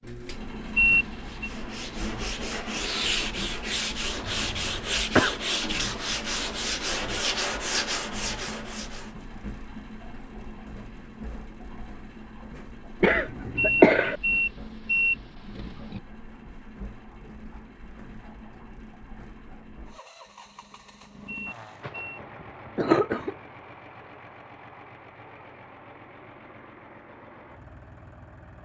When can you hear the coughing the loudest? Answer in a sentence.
The volume of the coughing peaks at 14 seconds.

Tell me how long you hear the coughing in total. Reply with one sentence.
You can hear the coughing for 4 seconds altogether.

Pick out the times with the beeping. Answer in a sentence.
The beeping can be heard from 0.8 to 1.5 s, from 13.6 to 16.0 s and from 21.2 to 22.2 s.